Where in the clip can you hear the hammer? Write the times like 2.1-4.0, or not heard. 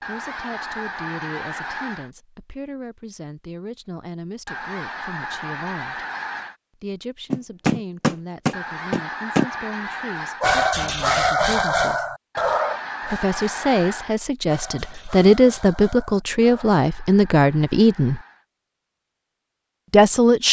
7.3-9.4.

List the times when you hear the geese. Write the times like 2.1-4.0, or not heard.
0.0-2.1, 4.5-6.5, 8.5-10.5, 12.3-14.2, 16.4-18.4.